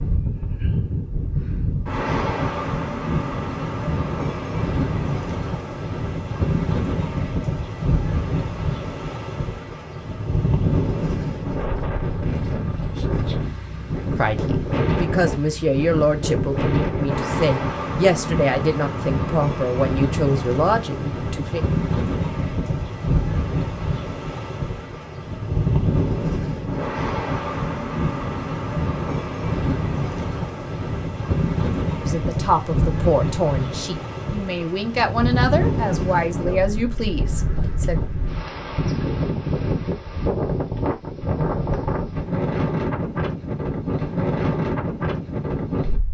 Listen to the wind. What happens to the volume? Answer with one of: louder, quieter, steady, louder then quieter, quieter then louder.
steady.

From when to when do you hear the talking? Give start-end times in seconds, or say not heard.
14.1-21.6, 32.0-38.0.